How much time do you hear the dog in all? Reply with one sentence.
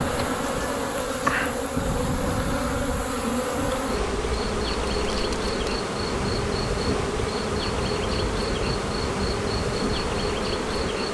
The dog can't be heard in this clip.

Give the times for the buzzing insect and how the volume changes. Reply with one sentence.
You can hear the buzzing insect from 0.0 to 11.0 s, at a steady volume.